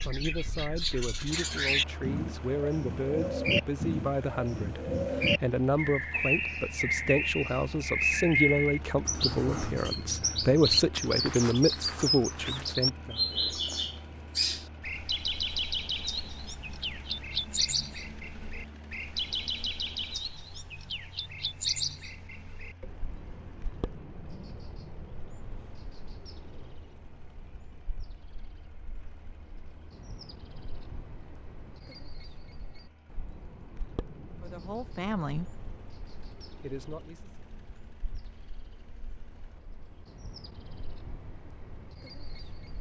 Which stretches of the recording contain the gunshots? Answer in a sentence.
You can't hear the gunshots here.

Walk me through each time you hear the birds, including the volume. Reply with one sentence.
The birds can be heard from 0.0 to 42.7 s, getting quieter.